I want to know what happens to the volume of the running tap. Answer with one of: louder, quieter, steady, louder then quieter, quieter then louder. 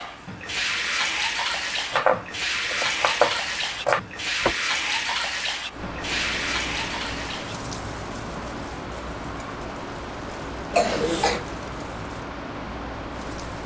quieter.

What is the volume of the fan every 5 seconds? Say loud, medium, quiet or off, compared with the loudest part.
quiet, loud, loud.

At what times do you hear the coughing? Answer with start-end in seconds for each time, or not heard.
10.7-11.4.